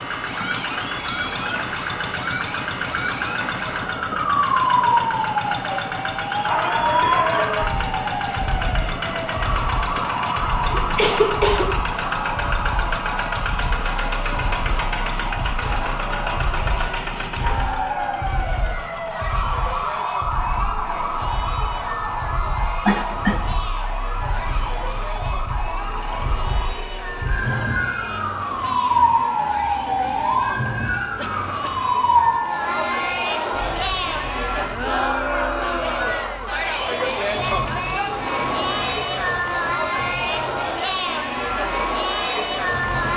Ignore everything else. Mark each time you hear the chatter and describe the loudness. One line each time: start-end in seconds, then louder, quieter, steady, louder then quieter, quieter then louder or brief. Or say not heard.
0.0-43.1 louder.